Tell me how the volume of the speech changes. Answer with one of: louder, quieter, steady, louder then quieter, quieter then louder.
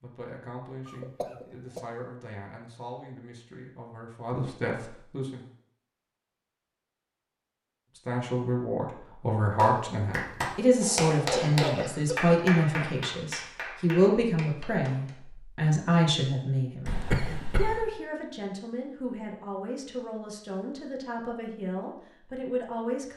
louder then quieter.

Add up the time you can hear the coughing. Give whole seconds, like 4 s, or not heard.
4 s.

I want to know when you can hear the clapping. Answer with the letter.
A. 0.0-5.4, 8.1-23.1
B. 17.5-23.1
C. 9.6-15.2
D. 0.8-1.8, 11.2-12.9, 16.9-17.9
C.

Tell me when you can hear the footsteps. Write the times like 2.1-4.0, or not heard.
not heard.